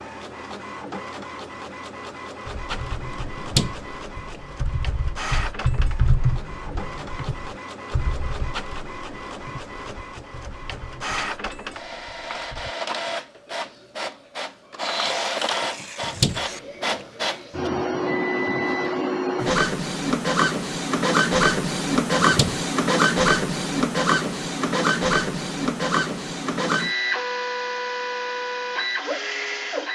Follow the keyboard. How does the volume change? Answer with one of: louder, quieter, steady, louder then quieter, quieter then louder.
louder then quieter.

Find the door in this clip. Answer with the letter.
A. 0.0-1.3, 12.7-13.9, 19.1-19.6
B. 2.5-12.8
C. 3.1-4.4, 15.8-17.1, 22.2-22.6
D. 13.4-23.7
C.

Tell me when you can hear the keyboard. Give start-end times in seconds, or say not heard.
2.5-12.8.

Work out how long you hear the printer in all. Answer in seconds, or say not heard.
30 s.